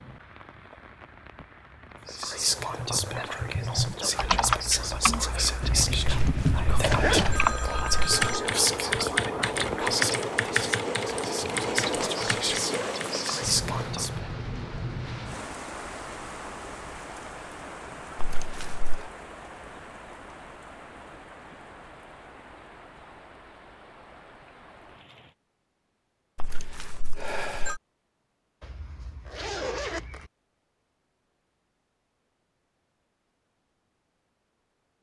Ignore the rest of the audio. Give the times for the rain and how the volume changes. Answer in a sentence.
The rain can be heard from 0.0 to 25.4 s, getting louder then quieter.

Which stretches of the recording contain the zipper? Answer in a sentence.
The zipper can be heard from 5.6 to 7.4 s and from 28.6 to 30.3 s.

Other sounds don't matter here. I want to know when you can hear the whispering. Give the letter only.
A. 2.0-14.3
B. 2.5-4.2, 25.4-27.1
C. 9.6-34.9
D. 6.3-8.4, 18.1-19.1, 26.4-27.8
A.